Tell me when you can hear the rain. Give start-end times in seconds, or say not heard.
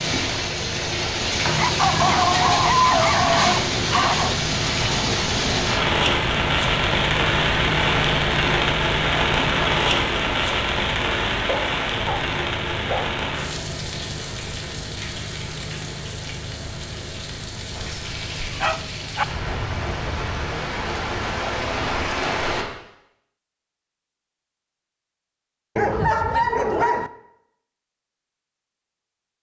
0.0-22.6.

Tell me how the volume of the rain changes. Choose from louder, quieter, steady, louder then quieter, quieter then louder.
quieter then louder.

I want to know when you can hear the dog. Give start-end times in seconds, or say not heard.
1.6-4.3, 11.3-13.1, 17.7-19.2, 25.8-27.1.